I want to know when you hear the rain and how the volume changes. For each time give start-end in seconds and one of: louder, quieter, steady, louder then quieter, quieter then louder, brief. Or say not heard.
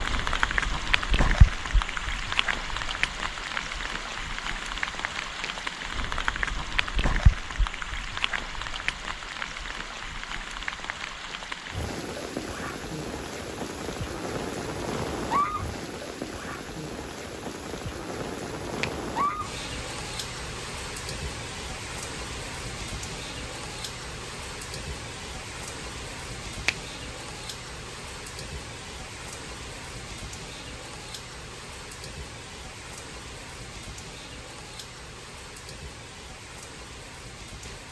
0.0-37.8 quieter.